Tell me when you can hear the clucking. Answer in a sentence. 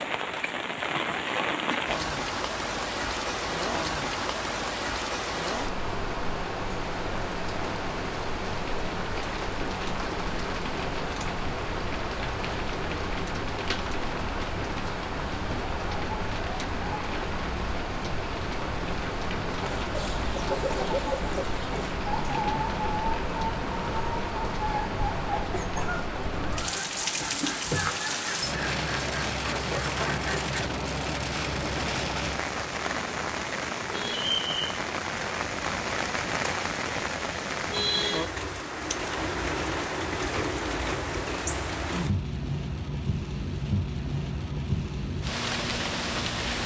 You can hear the clucking from 19.6 to 30.6 s.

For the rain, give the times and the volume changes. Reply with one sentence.
The rain can be heard from 0.0 to 46.6 s, at a steady volume.